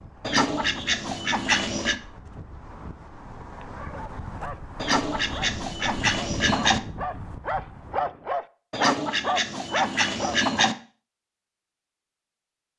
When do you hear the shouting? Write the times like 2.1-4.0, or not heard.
not heard.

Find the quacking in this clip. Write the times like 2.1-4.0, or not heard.
0.2-2.0, 4.8-6.8, 8.7-10.8.